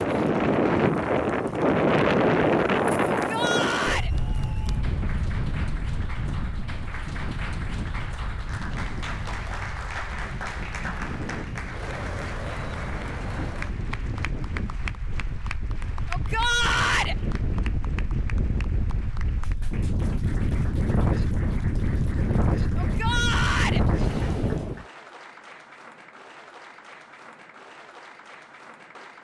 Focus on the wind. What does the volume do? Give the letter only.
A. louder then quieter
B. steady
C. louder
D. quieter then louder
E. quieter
D.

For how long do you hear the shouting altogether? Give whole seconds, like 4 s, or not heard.
3 s.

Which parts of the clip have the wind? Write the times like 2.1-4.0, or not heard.
0.0-24.9.